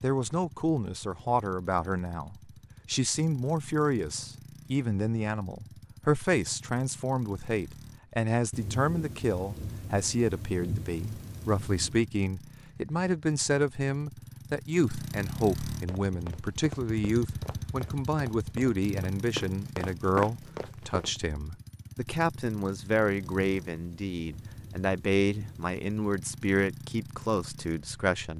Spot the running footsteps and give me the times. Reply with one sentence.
You can hear the running footsteps from 15.8 to 21.1 s.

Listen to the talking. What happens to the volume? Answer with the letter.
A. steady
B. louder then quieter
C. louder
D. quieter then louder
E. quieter
A.